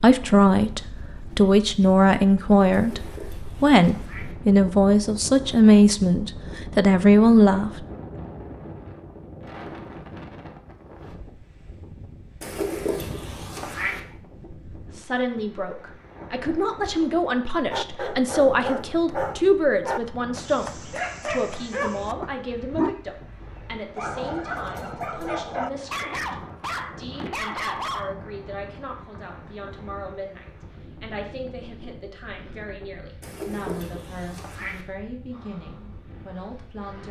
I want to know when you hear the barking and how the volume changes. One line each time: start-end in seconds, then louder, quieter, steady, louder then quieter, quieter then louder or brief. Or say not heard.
17.7-28.1 steady.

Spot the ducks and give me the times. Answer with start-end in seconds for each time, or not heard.
2.7-4.3, 12.4-14.0, 33.2-34.9.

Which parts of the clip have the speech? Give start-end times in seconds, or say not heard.
0.0-7.8, 14.9-37.0.